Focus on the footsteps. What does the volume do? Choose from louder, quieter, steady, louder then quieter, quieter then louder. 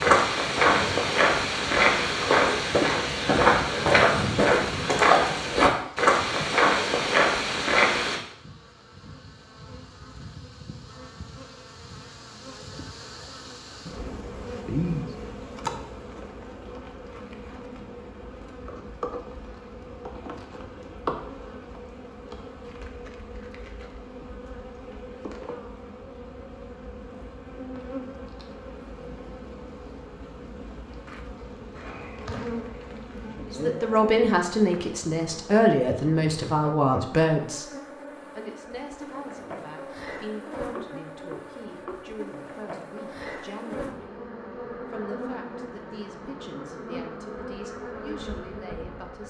steady.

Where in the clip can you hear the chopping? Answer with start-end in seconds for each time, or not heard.
40.6-42.1.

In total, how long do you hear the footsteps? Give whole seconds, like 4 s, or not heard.
8 s.